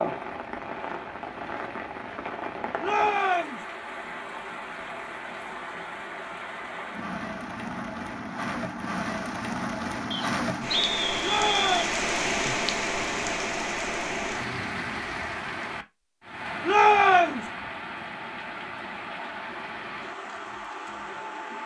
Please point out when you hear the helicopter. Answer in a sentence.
The helicopter can't be heard in this clip.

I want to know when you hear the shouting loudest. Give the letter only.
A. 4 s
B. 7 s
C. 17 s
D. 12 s
C.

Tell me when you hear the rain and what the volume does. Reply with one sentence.
The rain can be heard from 0.0 to 21.6 s, getting louder then quieter.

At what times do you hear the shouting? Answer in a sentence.
You can hear the shouting from 2.8 to 3.6 s, from 11.2 to 12.0 s and from 16.6 to 17.5 s.